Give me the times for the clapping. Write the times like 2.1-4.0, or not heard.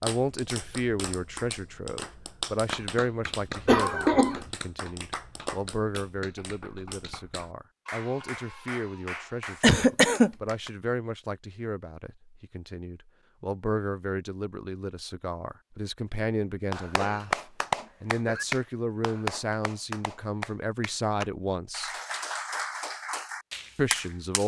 0.0-10.7, 16.7-24.4.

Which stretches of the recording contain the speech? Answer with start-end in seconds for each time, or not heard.
0.0-21.9, 23.8-24.4.